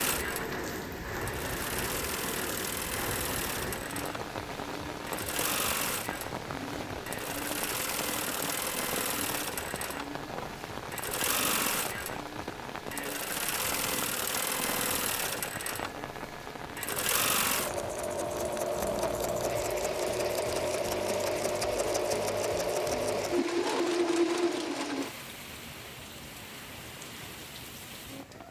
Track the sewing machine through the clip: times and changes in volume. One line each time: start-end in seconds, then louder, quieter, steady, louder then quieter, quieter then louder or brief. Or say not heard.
0.0-25.1 louder.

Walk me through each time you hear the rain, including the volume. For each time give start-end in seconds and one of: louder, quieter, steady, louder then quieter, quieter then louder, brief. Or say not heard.
0.0-28.4 quieter.